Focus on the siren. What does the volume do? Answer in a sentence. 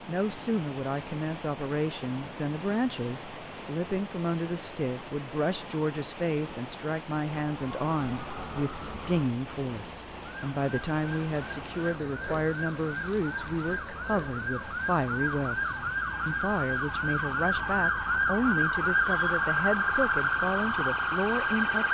The volume of the siren goes up.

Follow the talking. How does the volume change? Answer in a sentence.
The volume of the talking stays about the same.